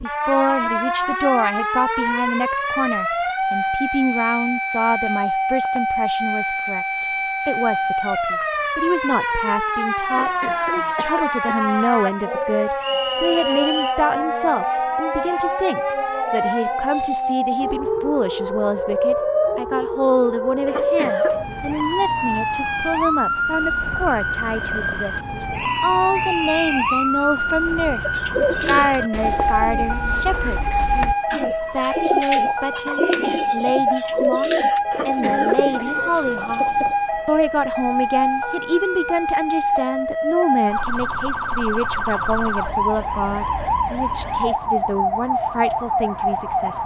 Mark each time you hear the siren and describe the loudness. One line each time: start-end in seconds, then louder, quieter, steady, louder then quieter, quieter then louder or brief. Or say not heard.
0.0-46.8 steady.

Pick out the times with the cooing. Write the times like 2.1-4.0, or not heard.
28.0-37.0.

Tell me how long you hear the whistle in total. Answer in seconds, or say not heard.
3 s.